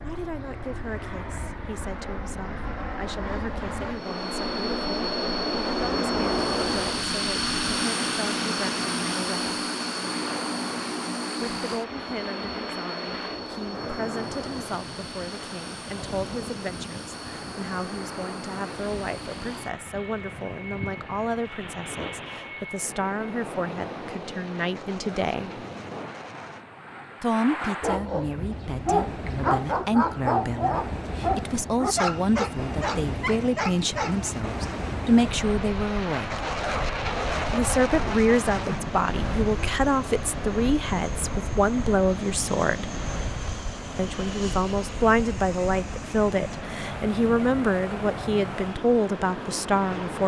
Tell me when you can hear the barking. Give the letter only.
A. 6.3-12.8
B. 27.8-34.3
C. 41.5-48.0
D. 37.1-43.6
B.